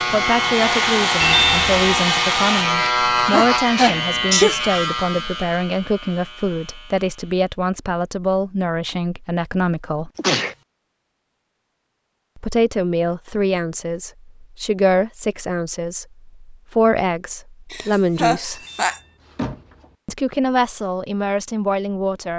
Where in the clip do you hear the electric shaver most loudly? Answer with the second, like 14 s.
3 s.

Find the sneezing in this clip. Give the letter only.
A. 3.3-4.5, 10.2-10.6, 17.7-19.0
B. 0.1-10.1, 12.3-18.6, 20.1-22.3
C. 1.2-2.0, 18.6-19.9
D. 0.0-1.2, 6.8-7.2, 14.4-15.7
A.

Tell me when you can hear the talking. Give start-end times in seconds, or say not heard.
0.1-10.1, 12.3-18.6, 20.1-22.3.